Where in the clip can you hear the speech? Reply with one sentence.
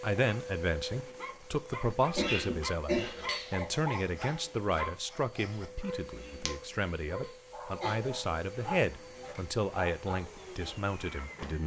The speech can be heard from 0.0 to 11.6 s.